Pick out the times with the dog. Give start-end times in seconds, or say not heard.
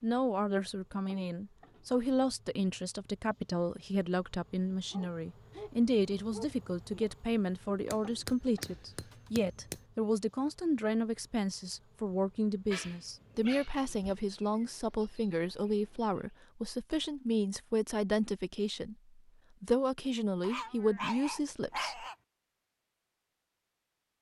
4.9-6.5, 12.7-14.2, 20.4-22.1.